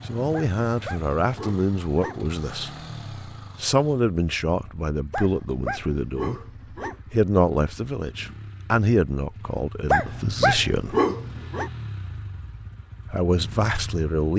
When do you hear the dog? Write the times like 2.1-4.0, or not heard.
0.3-2.2, 5.1-7.0, 9.9-11.7.